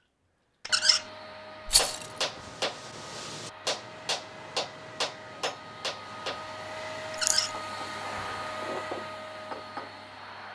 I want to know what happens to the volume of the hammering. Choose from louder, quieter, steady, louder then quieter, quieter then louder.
quieter then louder.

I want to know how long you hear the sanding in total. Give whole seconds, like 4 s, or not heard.
not heard.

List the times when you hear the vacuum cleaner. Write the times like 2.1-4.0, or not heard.
0.0-10.5.